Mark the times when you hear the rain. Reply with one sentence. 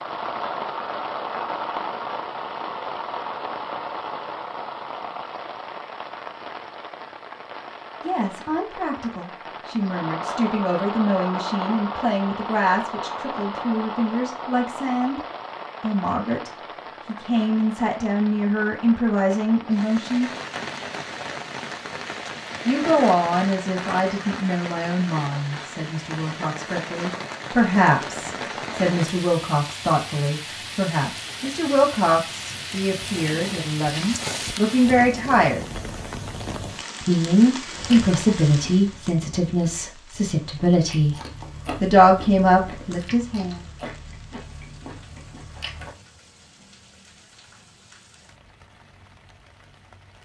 The rain can be heard from 0.0 to 50.2 s.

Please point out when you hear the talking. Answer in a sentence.
You can hear the talking from 8.0 to 15.2 s, from 15.8 to 20.3 s, from 22.6 to 35.6 s, from 37.0 to 41.2 s and from 41.8 to 43.6 s.